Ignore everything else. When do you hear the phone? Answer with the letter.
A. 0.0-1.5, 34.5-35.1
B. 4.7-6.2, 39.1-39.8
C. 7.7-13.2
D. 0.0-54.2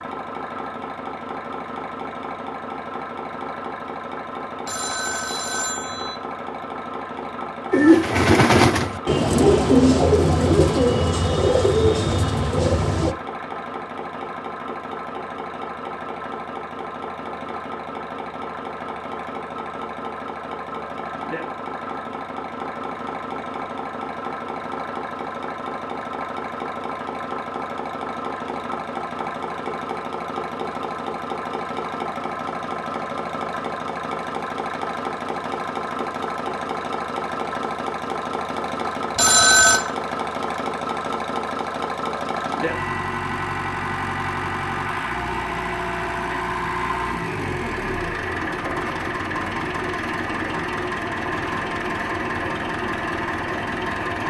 B.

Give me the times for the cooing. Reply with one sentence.
You can hear the cooing from 7.7 to 13.2 s.